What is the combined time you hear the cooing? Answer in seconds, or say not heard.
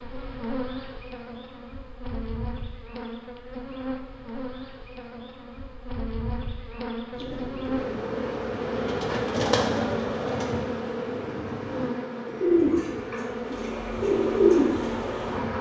8 s.